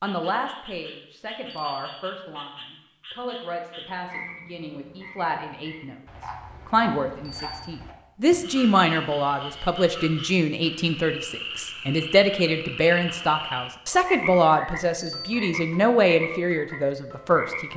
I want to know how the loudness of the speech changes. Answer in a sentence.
The loudness of the speech goes up.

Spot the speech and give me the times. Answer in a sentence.
The speech can be heard from 0.0 to 17.7 s.